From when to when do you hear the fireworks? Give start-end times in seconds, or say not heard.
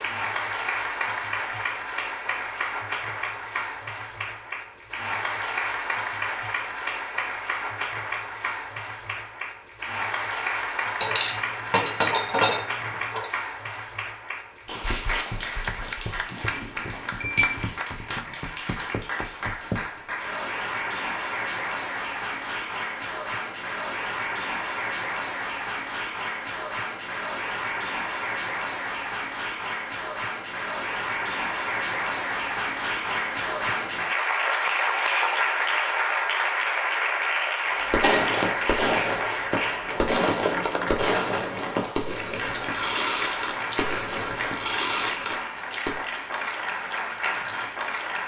37.6-46.0.